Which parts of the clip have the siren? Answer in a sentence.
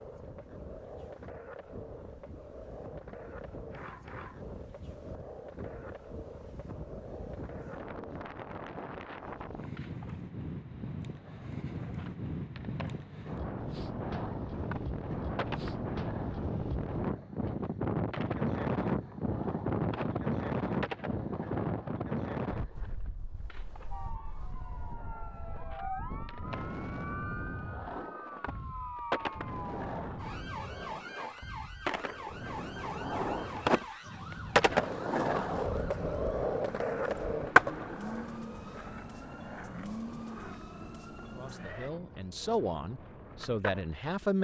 You can hear the siren from 23.9 to 41.9 s.